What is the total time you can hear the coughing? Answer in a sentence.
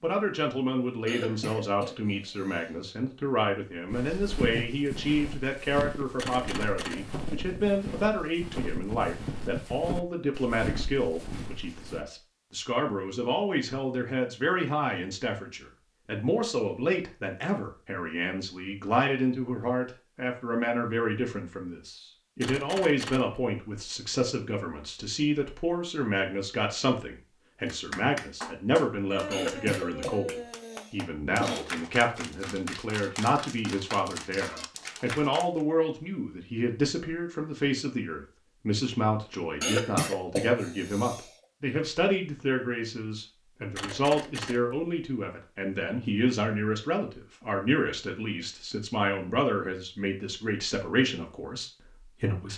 The coughing can be heard for 6 seconds in total.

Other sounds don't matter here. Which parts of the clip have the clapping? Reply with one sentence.
The clapping can be heard from 27.6 to 35.6 s.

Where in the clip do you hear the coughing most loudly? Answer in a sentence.
The volume of the coughing peaks at 40 seconds.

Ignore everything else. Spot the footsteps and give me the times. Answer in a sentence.
The footsteps can be heard from 3.9 to 12.1 s.